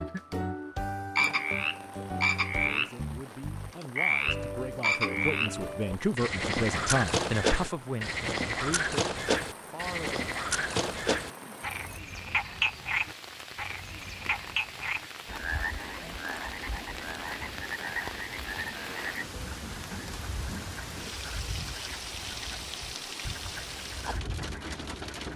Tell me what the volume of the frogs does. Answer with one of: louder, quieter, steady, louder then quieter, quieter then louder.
quieter.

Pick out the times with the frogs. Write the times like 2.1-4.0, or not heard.
0.0-25.3.